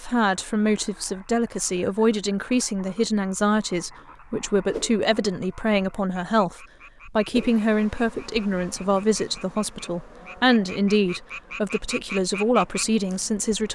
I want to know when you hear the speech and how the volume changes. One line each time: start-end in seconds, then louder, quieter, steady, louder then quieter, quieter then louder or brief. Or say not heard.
0.0-13.7 steady.